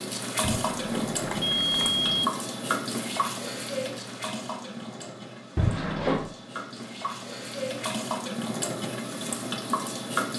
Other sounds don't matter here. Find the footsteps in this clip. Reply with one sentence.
You can't hear the footsteps here.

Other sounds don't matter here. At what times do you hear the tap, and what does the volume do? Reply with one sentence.
You can hear the tap from 0.0 to 10.3 s, getting quieter then louder.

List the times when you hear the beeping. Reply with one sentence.
The beeping can be heard from 0.4 to 2.2 s and from 5.5 to 6.3 s.